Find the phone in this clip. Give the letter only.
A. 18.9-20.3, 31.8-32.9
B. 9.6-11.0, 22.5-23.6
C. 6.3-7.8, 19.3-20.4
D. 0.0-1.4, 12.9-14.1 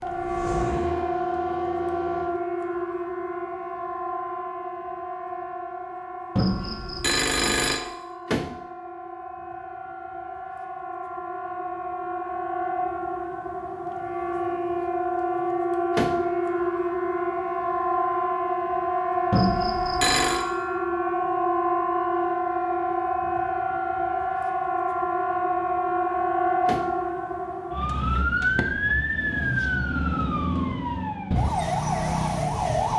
C.